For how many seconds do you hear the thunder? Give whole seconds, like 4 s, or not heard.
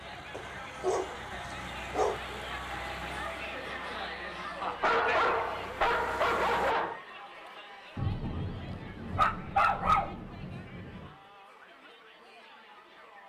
3 s.